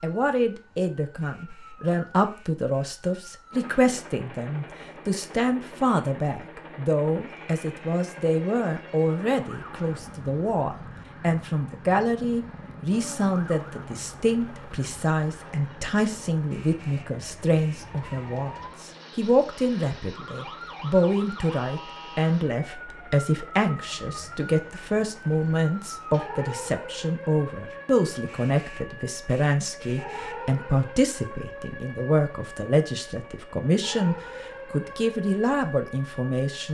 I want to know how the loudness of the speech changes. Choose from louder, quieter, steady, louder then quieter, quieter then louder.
steady.